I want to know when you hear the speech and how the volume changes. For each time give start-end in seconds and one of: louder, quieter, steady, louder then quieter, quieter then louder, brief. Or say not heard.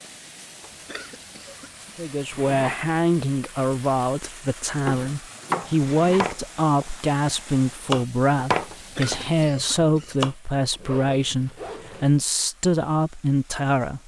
1.9-14.0 steady.